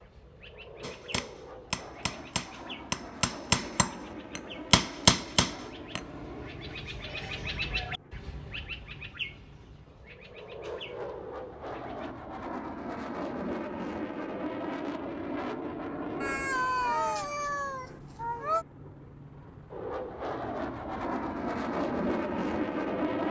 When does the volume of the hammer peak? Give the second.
5 s.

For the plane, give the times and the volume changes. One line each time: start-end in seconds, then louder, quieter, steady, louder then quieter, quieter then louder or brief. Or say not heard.
0.0-23.2 louder.